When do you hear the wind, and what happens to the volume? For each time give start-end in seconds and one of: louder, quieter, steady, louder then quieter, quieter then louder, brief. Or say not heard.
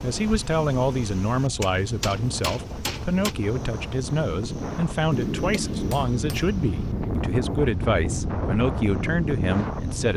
0.0-10.1 louder.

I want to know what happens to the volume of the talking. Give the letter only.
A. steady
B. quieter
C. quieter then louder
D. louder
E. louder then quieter
A.